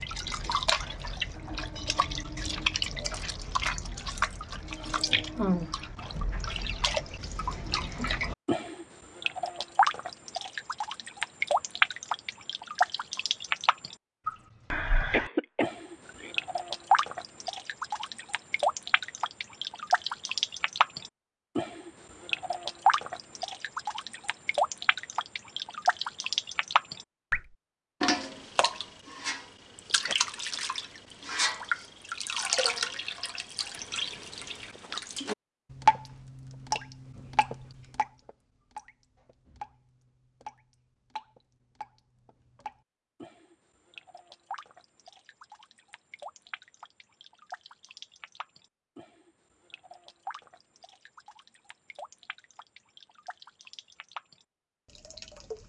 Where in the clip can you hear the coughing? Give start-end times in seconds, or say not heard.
15.1-16.4.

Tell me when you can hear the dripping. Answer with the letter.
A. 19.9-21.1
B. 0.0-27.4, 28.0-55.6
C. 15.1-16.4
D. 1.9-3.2
B.